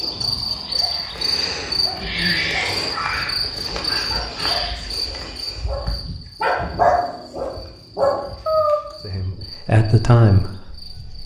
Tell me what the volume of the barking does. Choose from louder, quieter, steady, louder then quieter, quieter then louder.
louder.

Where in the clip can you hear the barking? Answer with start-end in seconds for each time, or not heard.
0.8-8.8.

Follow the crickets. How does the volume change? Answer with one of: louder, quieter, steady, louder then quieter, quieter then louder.
quieter.